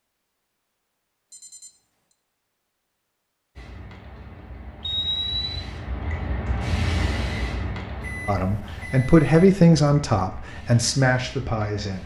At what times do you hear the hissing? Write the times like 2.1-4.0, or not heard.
3.5-12.0.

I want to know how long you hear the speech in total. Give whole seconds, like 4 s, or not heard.
4 s.